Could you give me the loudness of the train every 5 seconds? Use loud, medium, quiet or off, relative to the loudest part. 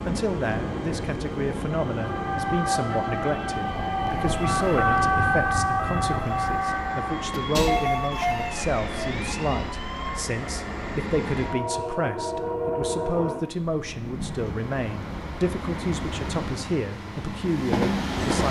loud, medium, loud, loud.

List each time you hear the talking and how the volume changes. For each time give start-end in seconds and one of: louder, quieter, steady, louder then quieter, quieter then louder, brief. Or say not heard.
0.1-18.4 steady.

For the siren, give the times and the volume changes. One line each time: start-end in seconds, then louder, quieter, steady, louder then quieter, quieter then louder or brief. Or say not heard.
0.0-10.2 louder then quieter.